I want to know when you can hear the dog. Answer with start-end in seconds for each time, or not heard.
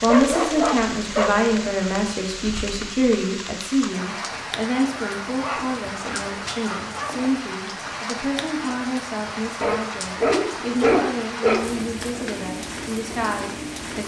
0.1-1.7, 5.0-7.3, 9.6-11.7.